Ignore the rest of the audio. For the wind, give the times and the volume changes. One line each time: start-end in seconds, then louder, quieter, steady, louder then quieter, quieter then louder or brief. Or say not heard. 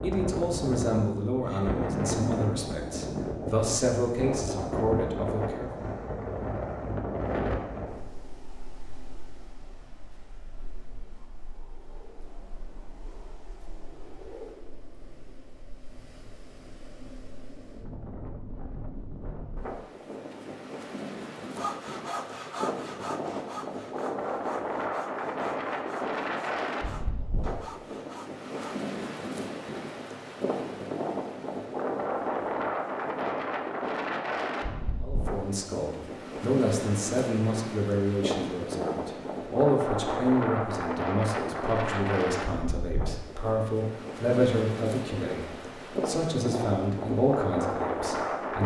0.0-48.6 quieter then louder.